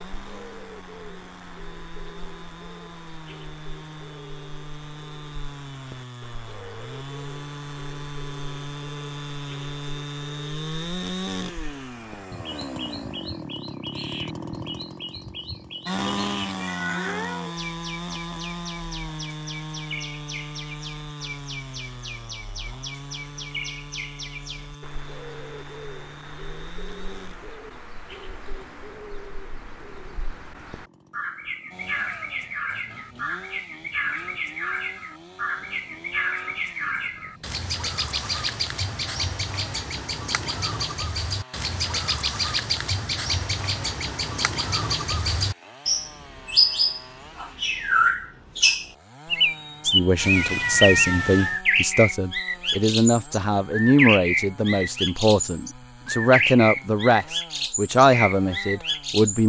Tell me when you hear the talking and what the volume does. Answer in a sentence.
The talking can be heard from 49.8 to 59.4 s, at a steady volume.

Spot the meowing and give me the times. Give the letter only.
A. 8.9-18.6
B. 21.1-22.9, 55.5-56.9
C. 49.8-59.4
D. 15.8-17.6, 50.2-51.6
D.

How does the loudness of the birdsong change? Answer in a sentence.
The volume of the birdsong goes up.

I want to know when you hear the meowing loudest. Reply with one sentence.
The loudest moment of the meowing is at 51 seconds.